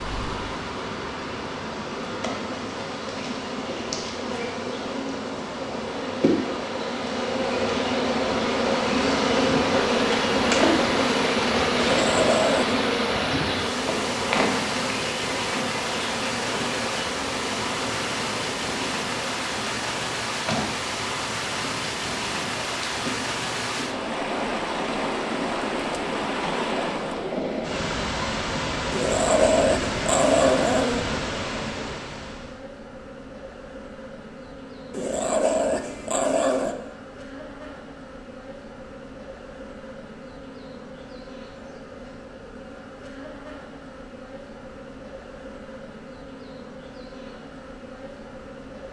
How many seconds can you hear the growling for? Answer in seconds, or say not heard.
5 s.